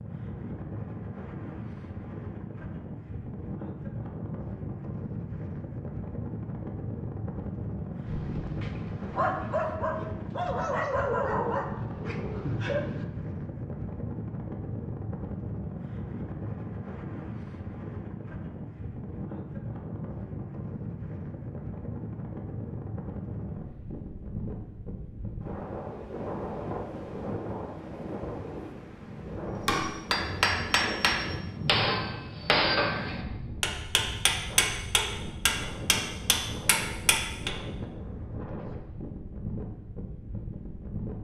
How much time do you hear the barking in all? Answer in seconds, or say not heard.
5 s.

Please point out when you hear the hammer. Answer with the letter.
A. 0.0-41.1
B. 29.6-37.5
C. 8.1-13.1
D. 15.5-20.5
B.